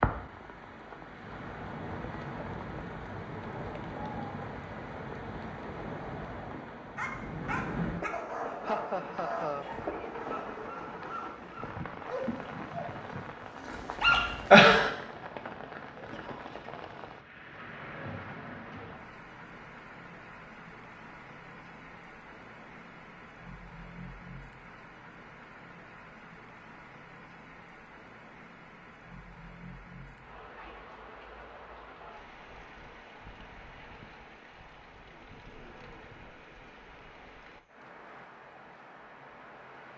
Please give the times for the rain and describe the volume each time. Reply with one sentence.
The rain can be heard from 0.0 to 39.9 s, getting quieter.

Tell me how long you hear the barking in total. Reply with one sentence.
You can hear the barking for 8 seconds altogether.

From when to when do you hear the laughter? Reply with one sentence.
You can hear the laughter from 8.6 to 9.7 s.